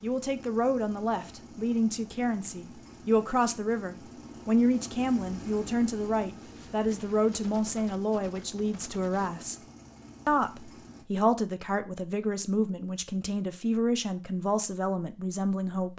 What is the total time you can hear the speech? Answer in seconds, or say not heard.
15 s.